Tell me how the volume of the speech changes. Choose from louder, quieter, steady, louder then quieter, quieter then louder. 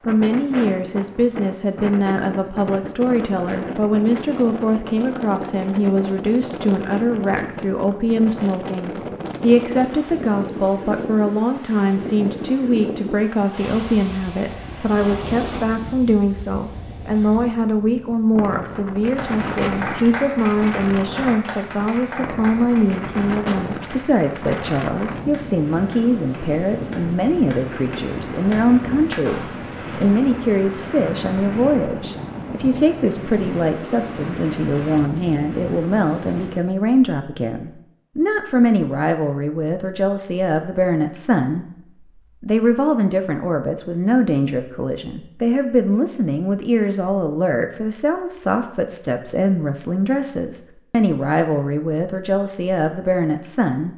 steady.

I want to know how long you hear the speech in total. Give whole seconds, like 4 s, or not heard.
53 s.